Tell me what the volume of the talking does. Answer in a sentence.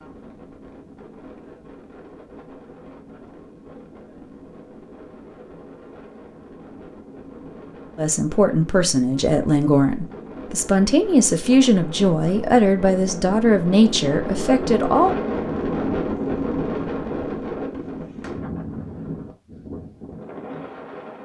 The loudness of the talking stays about the same.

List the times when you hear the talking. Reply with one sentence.
You can hear the talking from 8.0 to 15.2 s.